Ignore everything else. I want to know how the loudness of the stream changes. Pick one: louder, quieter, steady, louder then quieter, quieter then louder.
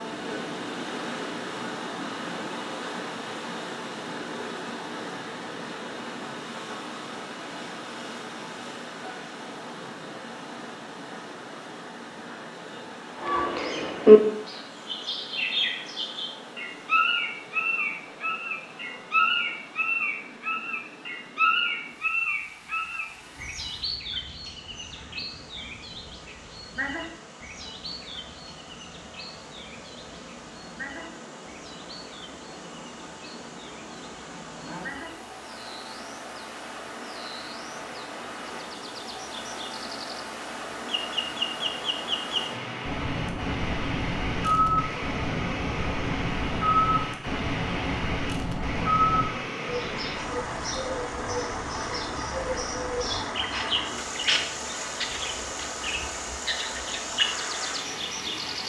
quieter then louder.